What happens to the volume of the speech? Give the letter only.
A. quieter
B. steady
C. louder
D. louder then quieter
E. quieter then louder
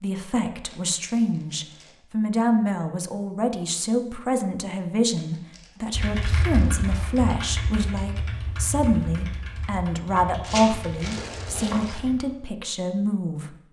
B.